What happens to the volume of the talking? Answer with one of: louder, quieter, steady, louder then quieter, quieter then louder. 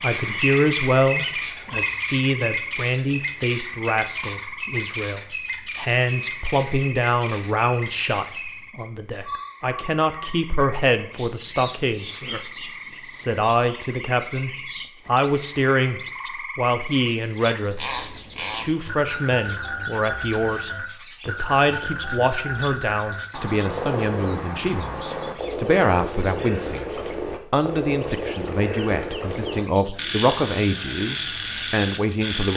steady.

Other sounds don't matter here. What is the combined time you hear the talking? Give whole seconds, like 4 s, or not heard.
32 s.